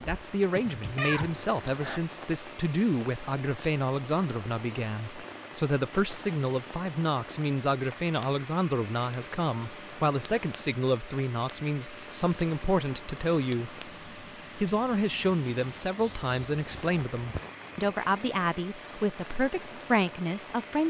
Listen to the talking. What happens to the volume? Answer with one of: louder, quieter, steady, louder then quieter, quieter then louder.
steady.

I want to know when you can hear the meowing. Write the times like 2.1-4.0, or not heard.
0.5-2.0, 15.9-17.5.